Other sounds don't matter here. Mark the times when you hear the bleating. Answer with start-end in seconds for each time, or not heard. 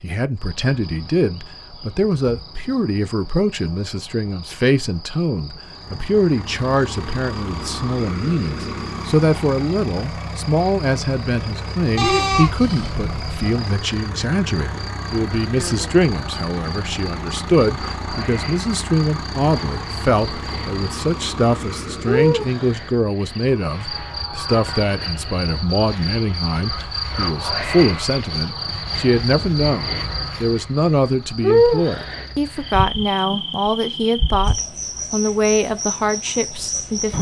11.9-13.5.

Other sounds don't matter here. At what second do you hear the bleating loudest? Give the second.
12 s.